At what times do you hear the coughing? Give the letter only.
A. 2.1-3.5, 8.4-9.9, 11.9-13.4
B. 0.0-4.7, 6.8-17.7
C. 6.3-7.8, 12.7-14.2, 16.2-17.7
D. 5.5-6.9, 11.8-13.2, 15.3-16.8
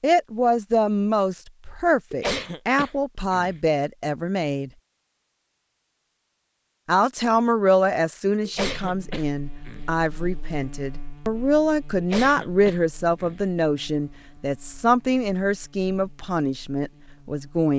A.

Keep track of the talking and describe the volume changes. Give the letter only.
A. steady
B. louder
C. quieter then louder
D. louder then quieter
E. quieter
A.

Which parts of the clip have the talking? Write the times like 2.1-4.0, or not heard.
0.0-4.7, 6.8-17.7.